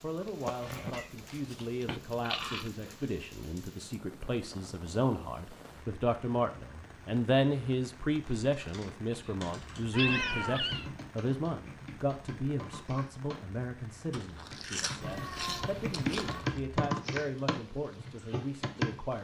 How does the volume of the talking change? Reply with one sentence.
The loudness of the talking goes up, then down.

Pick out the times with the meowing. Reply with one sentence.
The meowing can be heard from 0.2 to 2.0 s, from 9.9 to 10.9 s and from 15.0 to 16.6 s.